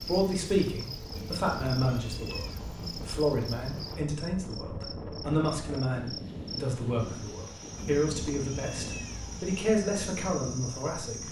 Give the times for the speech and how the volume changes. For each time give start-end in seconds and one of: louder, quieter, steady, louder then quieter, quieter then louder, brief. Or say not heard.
0.0-11.2 steady.